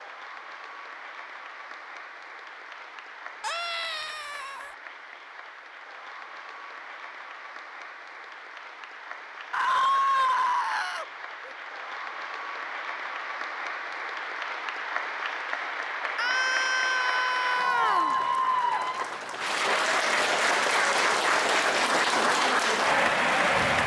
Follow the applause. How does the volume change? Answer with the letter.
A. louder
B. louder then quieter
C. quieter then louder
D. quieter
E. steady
A.